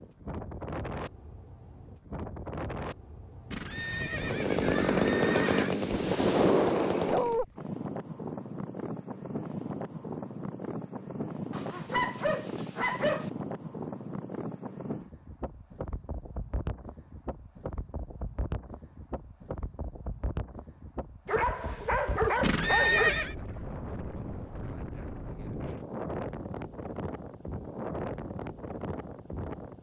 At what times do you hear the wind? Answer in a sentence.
You can hear the wind from 0.0 to 29.7 s.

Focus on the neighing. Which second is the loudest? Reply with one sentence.
The volume of the neighing peaks at 23 seconds.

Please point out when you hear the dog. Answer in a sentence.
The dog can be heard from 7.0 to 7.5 s, from 11.5 to 13.3 s and from 21.2 to 23.1 s.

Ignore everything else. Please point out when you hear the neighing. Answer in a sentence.
You can hear the neighing from 3.5 to 5.8 s and from 22.4 to 23.4 s.